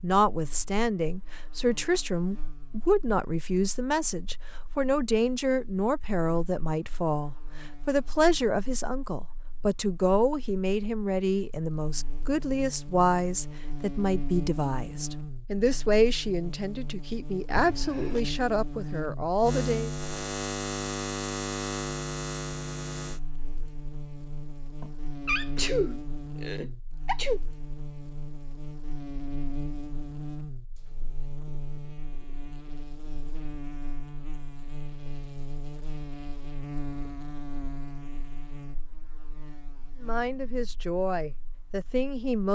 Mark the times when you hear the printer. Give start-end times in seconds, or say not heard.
not heard.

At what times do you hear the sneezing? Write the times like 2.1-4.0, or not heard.
17.6-18.2, 24.8-27.4.